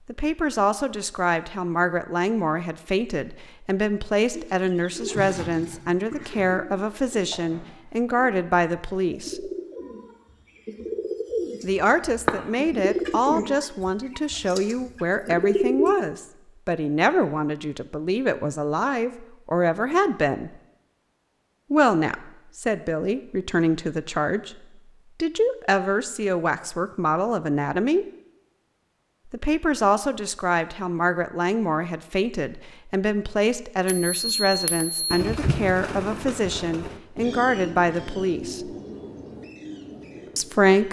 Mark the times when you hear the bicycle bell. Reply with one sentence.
The bicycle bell can be heard from 33.9 to 35.2 s.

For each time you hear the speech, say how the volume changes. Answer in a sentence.
The speech can be heard from 0.1 to 9.5 s, at a steady volume; from 11.6 to 20.5 s, at a steady volume; briefly from 21.7 to 24.6 s; briefly from 25.2 to 28.1 s; from 29.3 to 38.8 s, at a steady volume; and briefly from 40.4 to 40.8 s.